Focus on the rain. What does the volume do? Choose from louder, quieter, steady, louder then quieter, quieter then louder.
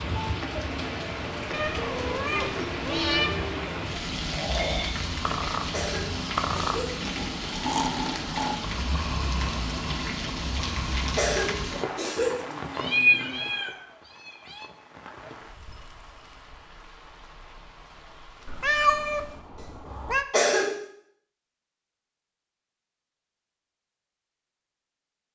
quieter.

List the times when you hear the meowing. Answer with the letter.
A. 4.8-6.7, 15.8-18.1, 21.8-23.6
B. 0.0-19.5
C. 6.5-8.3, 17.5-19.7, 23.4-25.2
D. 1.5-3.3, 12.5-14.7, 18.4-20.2
D.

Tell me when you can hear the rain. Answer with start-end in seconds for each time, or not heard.
0.0-19.5.